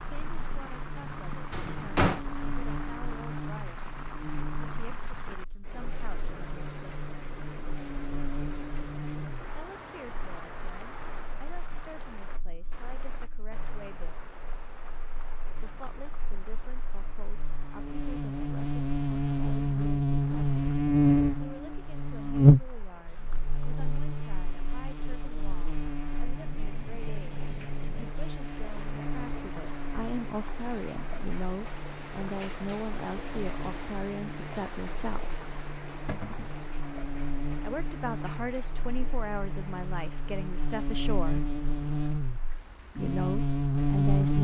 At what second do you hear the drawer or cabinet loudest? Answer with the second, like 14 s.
2 s.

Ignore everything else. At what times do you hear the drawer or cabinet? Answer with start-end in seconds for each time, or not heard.
1.5-2.2, 36.0-36.5.